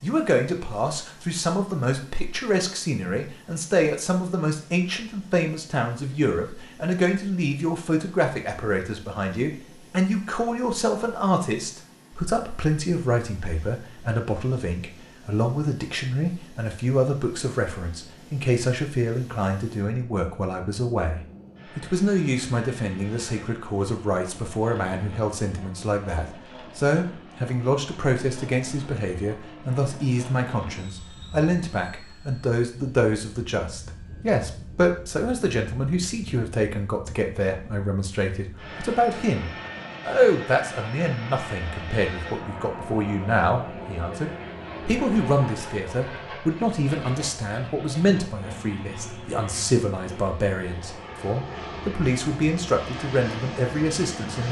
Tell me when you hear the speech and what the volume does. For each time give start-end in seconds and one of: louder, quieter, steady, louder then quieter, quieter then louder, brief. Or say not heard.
0.0-54.4 steady.